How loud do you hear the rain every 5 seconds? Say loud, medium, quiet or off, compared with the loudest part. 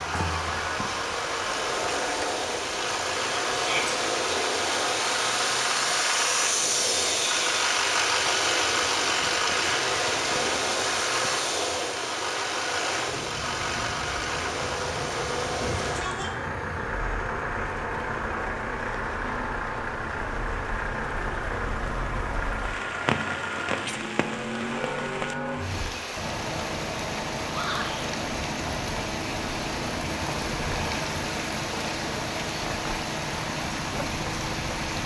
medium, medium, medium, medium, loud, loud, loud.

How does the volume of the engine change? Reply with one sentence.
The volume of the engine goes down.